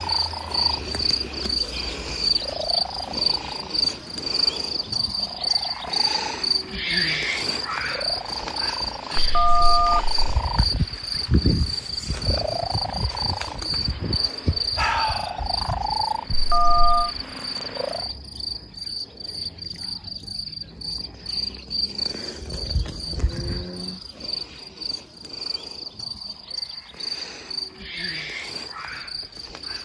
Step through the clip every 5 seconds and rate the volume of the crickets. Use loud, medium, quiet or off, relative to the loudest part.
loud, loud, loud, medium, medium, medium.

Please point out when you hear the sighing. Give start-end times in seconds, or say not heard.
14.8-15.4.